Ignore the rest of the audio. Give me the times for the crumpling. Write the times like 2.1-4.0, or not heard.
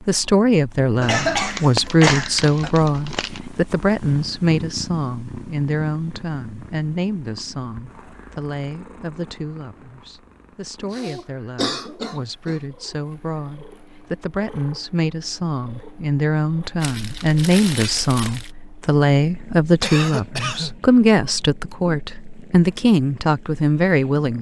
1.4-3.4, 16.8-18.5.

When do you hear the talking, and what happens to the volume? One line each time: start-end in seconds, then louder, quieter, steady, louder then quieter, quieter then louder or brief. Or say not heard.
0.1-24.3 quieter then louder.